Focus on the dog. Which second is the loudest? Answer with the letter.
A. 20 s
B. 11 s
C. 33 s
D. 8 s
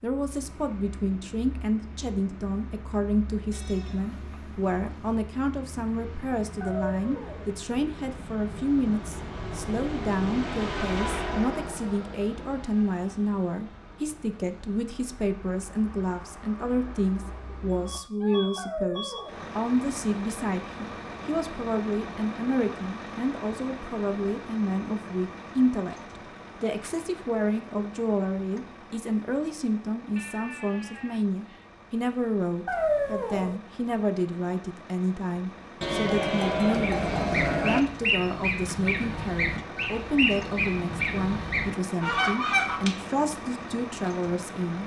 C.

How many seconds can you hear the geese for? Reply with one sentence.
The geese can be heard for 6 seconds in total.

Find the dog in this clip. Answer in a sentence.
You can hear the dog from 6.6 to 7.5 s, from 18.6 to 19.5 s and from 32.6 to 33.6 s.